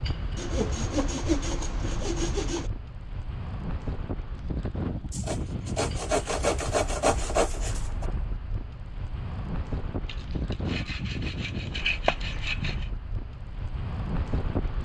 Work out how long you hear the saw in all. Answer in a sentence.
The saw can be heard for 8 seconds in total.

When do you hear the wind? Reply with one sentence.
The wind can be heard from 0.0 to 14.8 s.